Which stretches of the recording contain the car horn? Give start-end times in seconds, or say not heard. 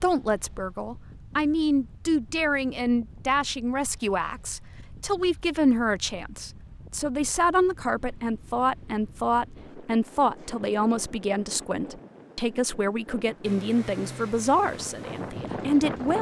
not heard.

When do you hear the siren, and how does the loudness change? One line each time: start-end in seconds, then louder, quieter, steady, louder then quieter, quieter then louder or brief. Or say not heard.
not heard.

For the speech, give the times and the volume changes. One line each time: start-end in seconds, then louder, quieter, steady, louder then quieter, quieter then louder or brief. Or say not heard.
0.0-16.1 steady.